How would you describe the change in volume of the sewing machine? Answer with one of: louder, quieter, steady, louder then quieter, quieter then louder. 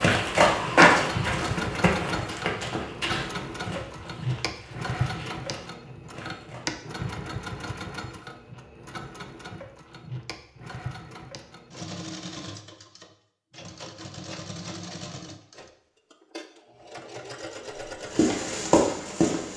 quieter.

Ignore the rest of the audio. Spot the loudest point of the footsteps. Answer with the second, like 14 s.
1 s.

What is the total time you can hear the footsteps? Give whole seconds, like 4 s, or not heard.
8 s.